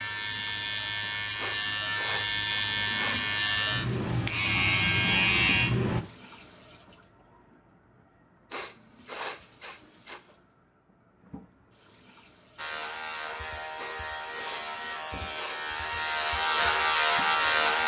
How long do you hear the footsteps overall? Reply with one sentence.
You can't hear the footsteps here.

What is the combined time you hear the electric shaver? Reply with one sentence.
The electric shaver can be heard for 11 seconds in total.